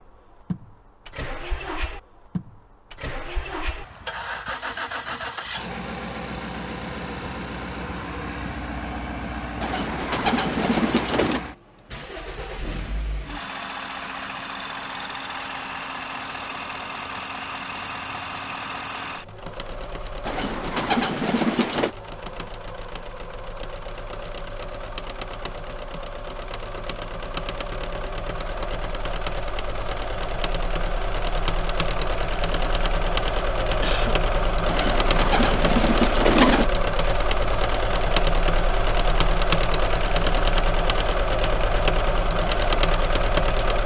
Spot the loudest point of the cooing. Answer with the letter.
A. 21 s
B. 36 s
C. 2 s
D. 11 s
B.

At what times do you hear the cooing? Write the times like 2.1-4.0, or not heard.
9.6-11.4, 20.2-21.9, 34.6-36.6.